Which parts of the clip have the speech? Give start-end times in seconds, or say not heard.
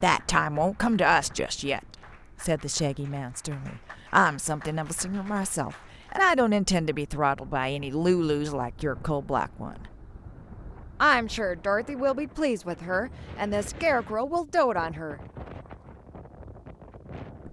0.0-9.9, 11.0-15.2.